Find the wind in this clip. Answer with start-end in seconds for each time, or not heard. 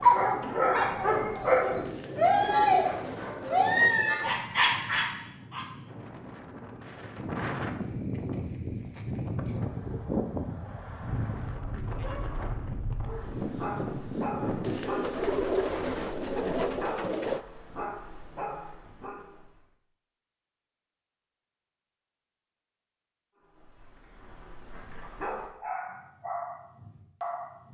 0.0-14.8.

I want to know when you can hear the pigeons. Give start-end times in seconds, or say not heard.
1.9-4.4, 14.6-17.4.